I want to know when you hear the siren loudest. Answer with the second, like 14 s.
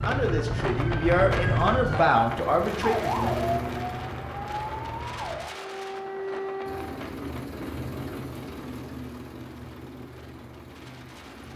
2 s.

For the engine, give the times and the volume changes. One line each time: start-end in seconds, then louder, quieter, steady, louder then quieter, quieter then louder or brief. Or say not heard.
2.4-5.1 brief
6.7-11.5 quieter.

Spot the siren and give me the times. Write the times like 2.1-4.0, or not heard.
0.0-7.0.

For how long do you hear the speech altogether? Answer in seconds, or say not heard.
3 s.